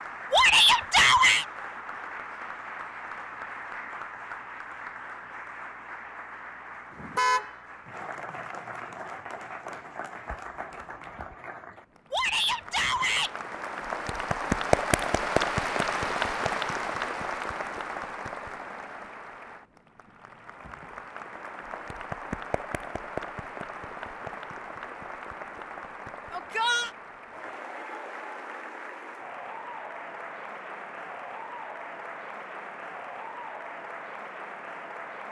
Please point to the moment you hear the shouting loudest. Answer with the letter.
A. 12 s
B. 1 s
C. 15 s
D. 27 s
B.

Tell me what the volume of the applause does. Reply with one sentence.
The volume of the applause goes up, then down.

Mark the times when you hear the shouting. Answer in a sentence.
The shouting can be heard from 0.3 to 1.4 s, from 12.1 to 13.3 s and from 26.3 to 26.9 s.